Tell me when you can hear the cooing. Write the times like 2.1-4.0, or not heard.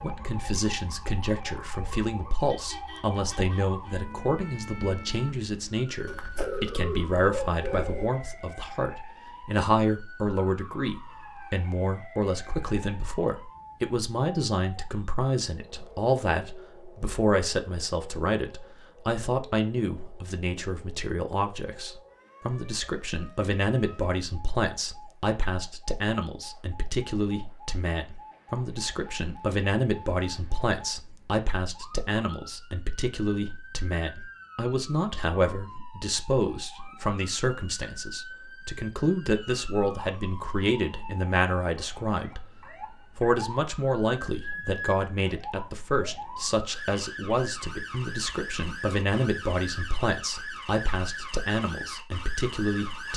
6.0-8.1.